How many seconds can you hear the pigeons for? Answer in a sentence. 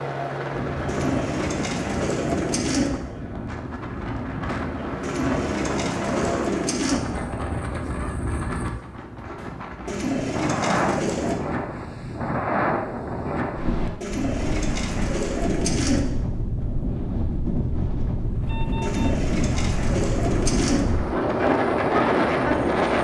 You can hear the pigeons for 10 seconds altogether.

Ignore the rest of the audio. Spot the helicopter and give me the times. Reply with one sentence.
You can hear the helicopter from 0.0 to 6.7 s and from 18.2 to 23.0 s.